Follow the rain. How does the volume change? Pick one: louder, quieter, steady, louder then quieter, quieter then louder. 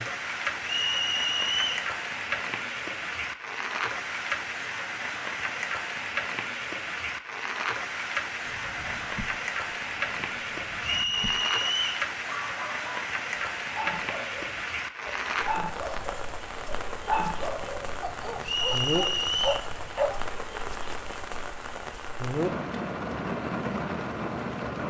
steady.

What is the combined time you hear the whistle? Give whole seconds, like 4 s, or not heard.
4 s.